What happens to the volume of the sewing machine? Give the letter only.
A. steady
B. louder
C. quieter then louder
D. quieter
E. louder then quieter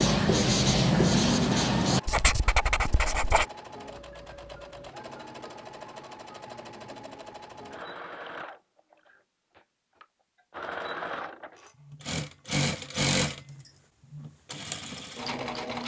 B.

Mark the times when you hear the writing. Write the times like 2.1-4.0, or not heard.
0.0-3.5.